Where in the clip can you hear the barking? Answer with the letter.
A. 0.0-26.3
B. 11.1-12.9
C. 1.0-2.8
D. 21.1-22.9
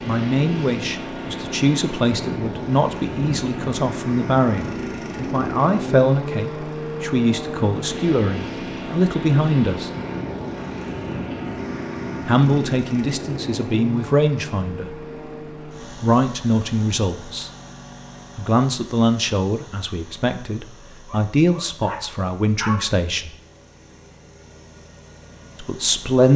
D.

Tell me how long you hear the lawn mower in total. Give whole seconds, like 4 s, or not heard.
26 s.